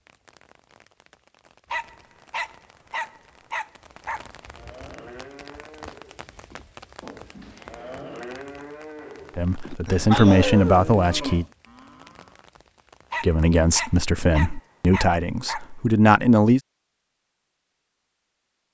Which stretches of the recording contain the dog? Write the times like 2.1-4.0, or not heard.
1.7-4.2, 10.1-10.9, 13.1-15.7.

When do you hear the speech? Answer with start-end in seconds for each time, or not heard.
9.3-11.4, 13.2-16.6.